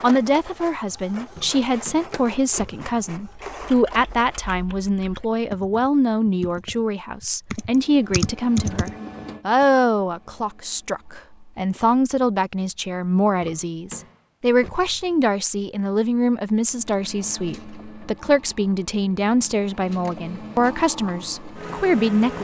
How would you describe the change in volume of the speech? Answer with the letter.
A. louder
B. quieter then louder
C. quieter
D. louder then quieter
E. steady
E.